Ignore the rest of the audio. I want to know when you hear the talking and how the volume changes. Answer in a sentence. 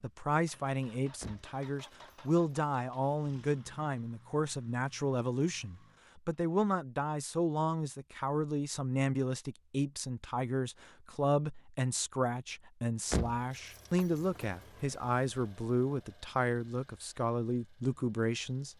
You can hear the talking from 0.0 to 18.7 s, at a steady volume.